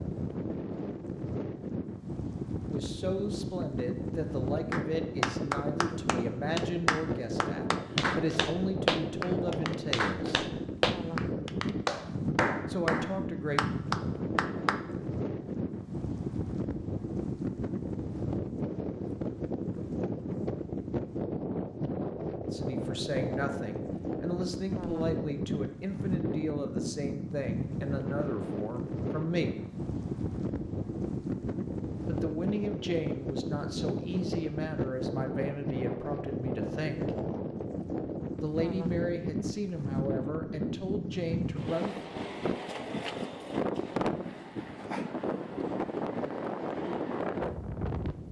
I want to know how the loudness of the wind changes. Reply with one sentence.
The loudness of the wind stays about the same.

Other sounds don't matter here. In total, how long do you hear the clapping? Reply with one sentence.
The clapping can be heard for 10 seconds in total.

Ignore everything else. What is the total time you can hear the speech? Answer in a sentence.
The speech can be heard for 25 seconds in total.